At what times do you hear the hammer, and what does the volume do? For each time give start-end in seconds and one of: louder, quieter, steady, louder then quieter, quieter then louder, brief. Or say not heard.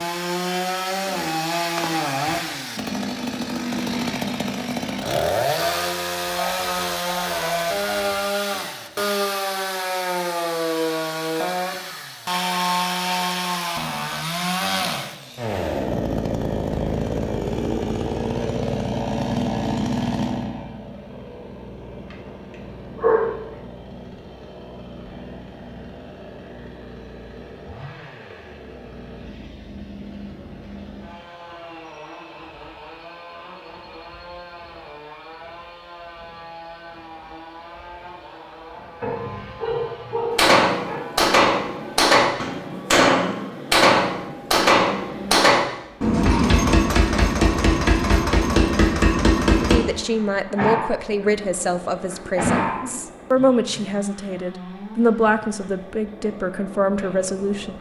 40.3-49.8 steady.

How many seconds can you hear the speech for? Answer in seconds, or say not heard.
8 s.